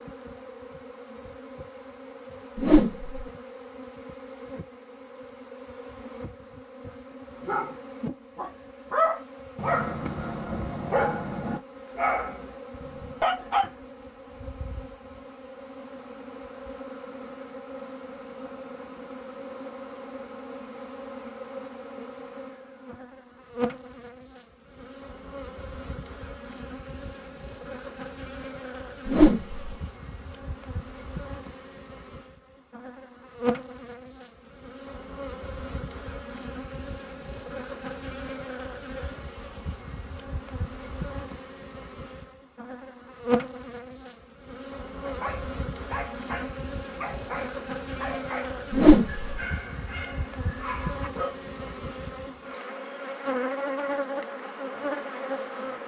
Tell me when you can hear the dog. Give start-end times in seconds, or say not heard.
7.5-13.7, 45.0-51.4.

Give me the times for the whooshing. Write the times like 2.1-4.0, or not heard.
2.5-3.2, 29.1-29.6, 48.7-49.3.